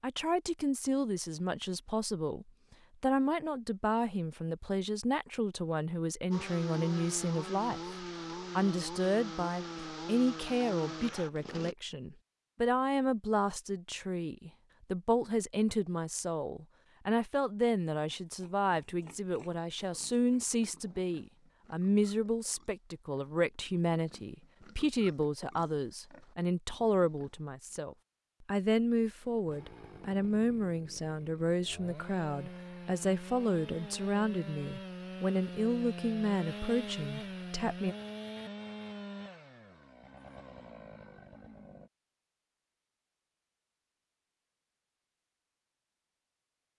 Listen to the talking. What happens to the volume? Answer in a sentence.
The volume of the talking stays about the same.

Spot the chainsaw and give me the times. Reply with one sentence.
You can hear the chainsaw from 6.3 to 11.8 s and from 29.2 to 41.9 s.